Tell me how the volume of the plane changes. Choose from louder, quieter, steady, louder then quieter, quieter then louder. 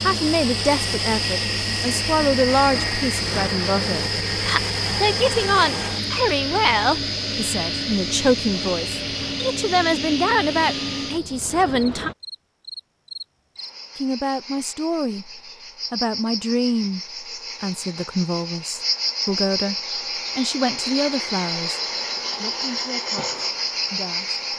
steady.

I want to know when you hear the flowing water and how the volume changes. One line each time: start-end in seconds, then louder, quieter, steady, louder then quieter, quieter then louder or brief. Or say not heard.
not heard.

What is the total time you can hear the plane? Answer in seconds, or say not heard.
12 s.